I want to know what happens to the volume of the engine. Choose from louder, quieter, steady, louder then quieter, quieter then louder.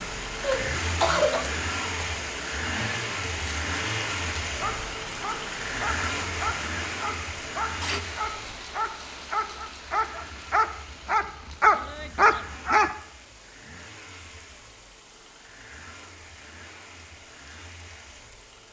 quieter.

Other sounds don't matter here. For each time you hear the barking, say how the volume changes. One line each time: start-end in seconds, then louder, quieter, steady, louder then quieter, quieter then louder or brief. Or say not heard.
4.5-12.9 louder.